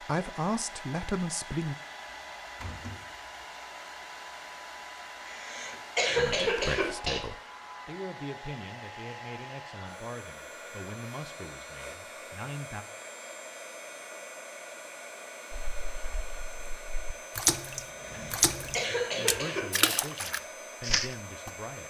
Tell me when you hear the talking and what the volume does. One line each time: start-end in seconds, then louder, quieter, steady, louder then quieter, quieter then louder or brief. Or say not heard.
0.0-1.8 brief
6.2-12.8 quieter
18.9-21.8 brief.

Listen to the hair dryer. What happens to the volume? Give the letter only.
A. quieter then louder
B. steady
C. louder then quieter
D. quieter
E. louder
B.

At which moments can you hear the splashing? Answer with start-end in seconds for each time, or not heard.
15.5-21.5.